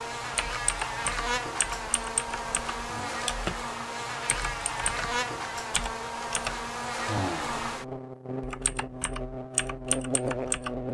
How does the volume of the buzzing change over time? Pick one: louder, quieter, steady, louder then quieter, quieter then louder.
steady.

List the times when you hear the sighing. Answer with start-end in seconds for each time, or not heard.
2.8-3.3, 7.0-7.7.